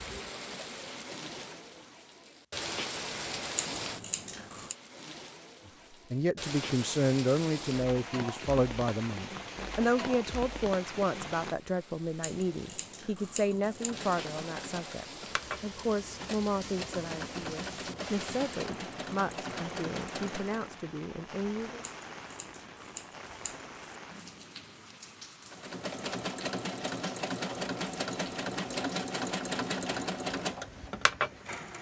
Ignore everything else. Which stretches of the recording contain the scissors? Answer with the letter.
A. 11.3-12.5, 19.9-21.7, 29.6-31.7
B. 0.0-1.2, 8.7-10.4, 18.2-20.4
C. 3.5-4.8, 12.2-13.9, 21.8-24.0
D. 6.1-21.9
C.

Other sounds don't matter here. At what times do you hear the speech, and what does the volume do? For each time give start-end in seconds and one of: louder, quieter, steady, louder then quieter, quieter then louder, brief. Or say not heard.
6.1-21.9 quieter.